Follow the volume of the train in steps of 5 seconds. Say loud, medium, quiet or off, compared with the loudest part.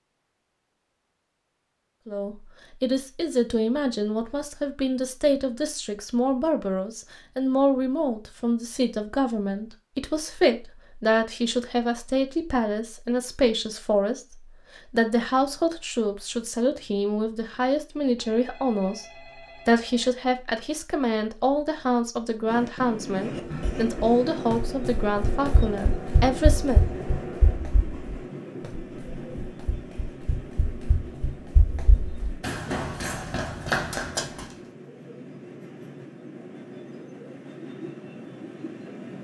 off, off, off, off, loud, loud, medium, medium.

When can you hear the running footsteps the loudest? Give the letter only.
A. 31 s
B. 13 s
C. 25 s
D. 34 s
D.